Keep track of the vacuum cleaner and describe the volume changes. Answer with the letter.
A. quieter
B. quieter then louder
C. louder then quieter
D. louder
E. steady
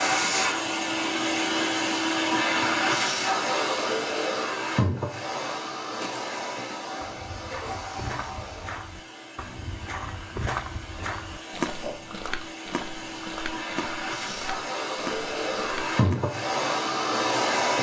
B.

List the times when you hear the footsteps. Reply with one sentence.
You can hear the footsteps from 5.9 to 16.2 s.